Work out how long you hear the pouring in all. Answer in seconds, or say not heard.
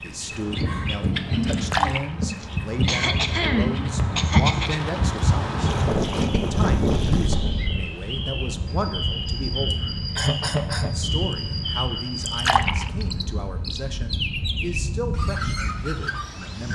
3 s.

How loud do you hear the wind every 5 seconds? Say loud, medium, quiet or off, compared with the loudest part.
loud, loud, medium, medium.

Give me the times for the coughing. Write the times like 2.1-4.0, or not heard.
2.4-4.8, 9.7-11.3.